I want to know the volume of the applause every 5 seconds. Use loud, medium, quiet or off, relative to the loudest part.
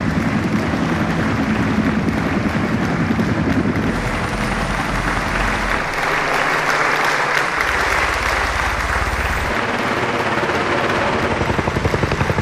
medium, loud, medium.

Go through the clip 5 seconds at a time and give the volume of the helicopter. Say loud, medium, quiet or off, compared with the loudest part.
loud, medium, loud.